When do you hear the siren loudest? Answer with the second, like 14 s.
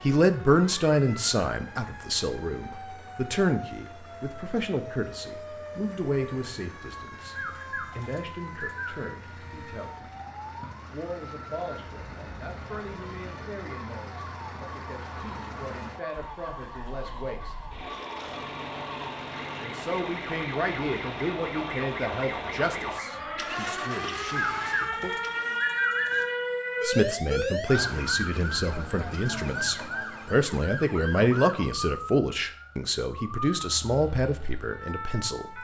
27 s.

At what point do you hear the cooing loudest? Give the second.
26 s.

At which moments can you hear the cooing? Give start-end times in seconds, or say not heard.
7.3-9.1, 24.4-26.2.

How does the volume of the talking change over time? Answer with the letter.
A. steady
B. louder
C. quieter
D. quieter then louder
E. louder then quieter
D.